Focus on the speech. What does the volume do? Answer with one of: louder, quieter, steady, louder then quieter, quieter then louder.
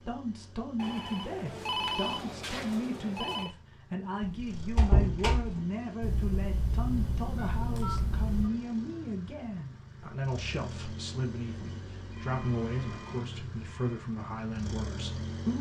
steady.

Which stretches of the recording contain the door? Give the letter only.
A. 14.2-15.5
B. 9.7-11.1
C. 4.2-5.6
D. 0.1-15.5
C.